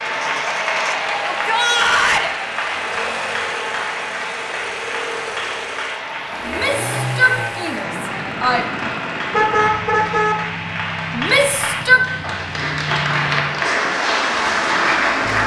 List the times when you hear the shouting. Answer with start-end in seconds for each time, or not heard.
1.3-2.3, 6.5-8.7, 11.2-12.0.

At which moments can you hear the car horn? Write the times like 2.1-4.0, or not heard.
9.3-10.3.